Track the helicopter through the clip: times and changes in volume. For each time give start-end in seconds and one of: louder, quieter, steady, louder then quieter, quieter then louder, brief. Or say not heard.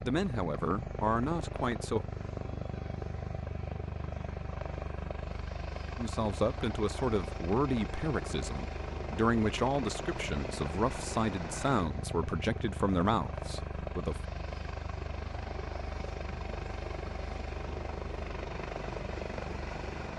0.0-20.1 steady.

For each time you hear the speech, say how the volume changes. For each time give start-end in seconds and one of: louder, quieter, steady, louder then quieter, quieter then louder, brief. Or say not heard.
0.0-2.0 brief
6.0-14.2 steady.